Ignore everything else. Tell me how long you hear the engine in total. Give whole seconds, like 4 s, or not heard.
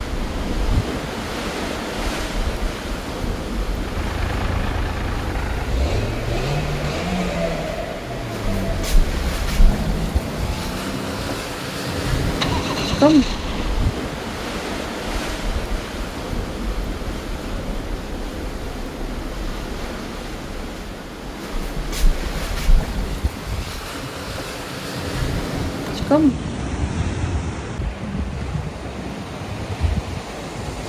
10 s.